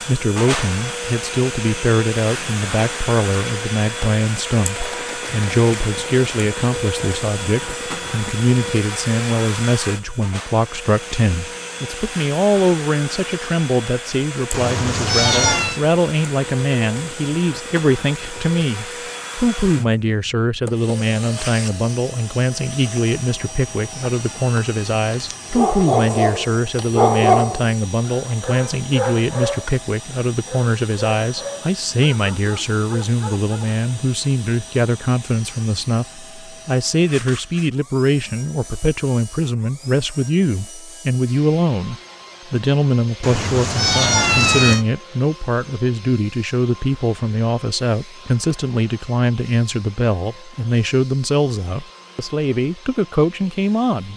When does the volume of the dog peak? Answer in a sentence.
The loudest moment of the dog is at 27 seconds.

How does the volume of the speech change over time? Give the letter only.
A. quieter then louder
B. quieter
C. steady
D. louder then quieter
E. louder
C.